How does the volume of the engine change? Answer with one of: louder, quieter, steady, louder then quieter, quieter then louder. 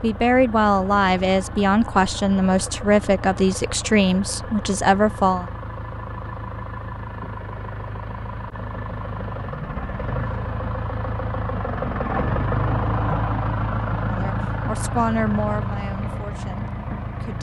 louder.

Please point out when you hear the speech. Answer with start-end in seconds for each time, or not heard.
0.0-5.5, 14.1-17.3.